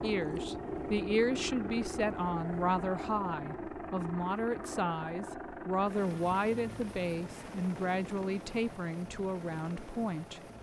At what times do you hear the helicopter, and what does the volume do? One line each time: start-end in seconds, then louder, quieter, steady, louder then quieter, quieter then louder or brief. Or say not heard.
0.0-10.5 quieter.